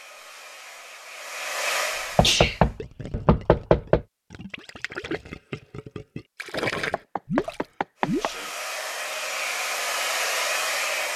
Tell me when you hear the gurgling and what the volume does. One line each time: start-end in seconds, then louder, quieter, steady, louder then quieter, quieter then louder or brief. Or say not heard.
2.6-8.3 louder.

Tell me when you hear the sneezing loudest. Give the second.
2 s.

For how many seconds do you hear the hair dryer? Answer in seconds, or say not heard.
6 s.